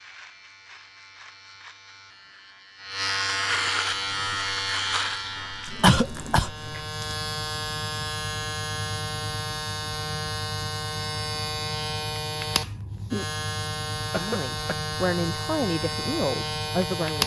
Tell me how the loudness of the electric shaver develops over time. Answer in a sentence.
The volume of the electric shaver stays about the same.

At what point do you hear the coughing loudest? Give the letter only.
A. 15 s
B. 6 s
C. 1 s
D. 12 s
B.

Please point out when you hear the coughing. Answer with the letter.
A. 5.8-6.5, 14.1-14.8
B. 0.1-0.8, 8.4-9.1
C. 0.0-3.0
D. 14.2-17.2
A.